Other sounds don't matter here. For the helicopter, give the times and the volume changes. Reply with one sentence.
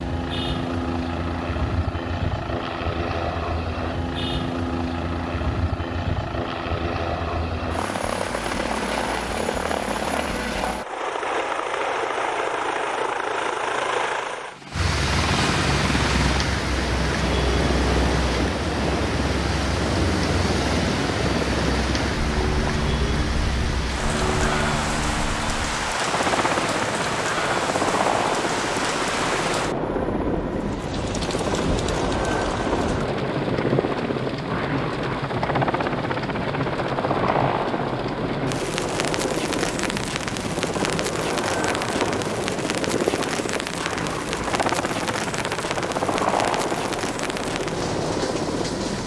The helicopter can be heard from 0.0 to 49.0 s, at a steady volume.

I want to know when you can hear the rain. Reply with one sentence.
The rain can be heard from 14.7 to 49.0 s.